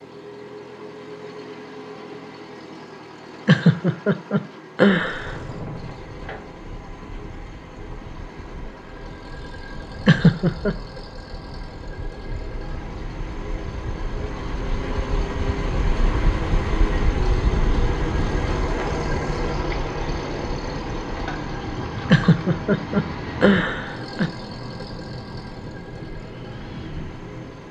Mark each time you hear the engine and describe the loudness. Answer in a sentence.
You can hear the engine from 0.0 to 27.6 s, getting louder then quieter.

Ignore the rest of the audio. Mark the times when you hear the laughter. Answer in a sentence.
The laughter can be heard from 3.5 to 5.3 s, from 10.1 to 10.8 s and from 22.1 to 24.3 s.